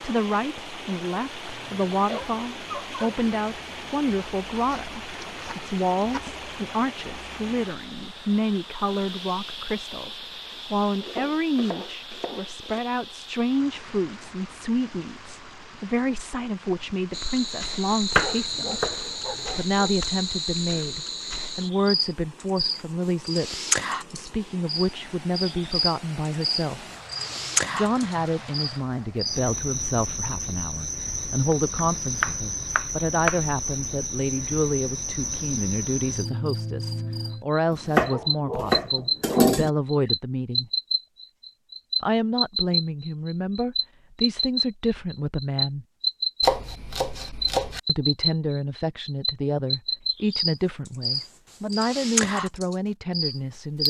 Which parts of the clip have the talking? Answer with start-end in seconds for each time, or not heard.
0.0-18.8, 19.6-26.9, 27.7-40.7, 42.0-45.9, 47.9-53.8.